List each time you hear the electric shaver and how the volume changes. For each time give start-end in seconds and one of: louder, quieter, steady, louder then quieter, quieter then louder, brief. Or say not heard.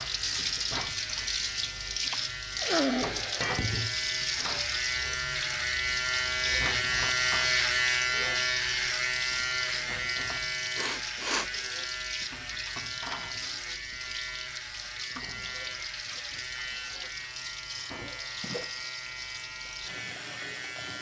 0.0-20.9 louder then quieter.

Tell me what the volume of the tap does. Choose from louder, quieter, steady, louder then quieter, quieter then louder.
quieter.